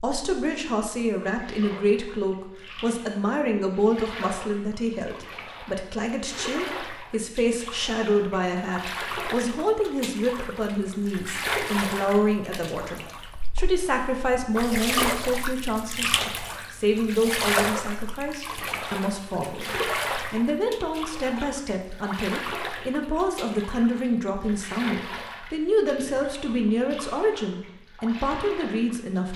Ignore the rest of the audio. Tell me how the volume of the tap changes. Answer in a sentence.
The loudness of the tap goes up, then down.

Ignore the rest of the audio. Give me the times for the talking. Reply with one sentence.
The talking can be heard from 0.0 to 29.3 s.